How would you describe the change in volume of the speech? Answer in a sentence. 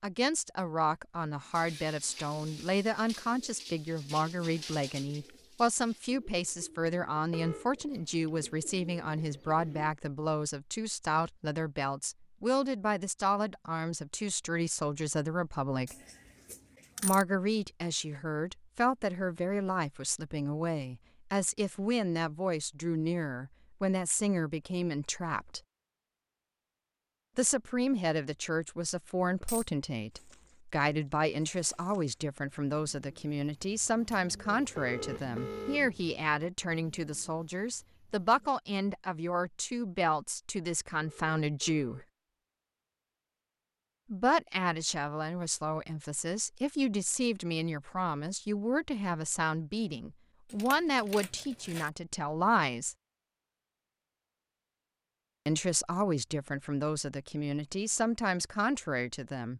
The volume of the speech stays about the same.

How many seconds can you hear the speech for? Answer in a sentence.
You can hear the speech for 52 seconds altogether.